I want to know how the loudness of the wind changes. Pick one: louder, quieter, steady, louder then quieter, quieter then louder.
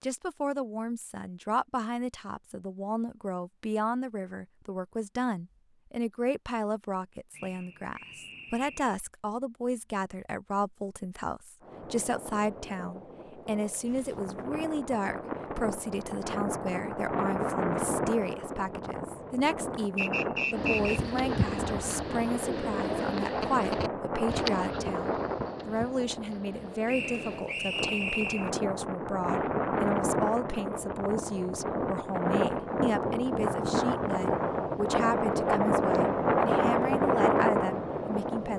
louder.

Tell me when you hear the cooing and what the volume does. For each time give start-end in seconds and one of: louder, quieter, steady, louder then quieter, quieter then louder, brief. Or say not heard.
20.5-27.4 quieter.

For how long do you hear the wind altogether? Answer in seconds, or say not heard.
27 s.